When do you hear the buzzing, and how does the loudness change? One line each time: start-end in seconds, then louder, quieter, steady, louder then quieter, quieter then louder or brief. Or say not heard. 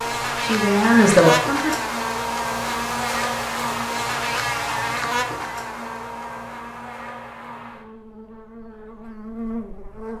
0.0-10.1 quieter.